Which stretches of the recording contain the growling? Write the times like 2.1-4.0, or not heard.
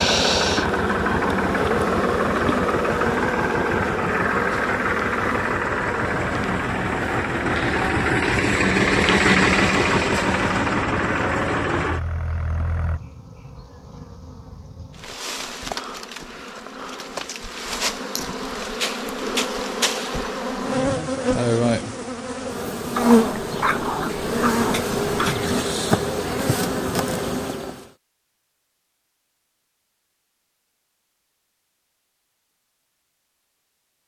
22.9-25.6.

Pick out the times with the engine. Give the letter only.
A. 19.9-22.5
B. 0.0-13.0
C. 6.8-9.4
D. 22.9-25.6
B.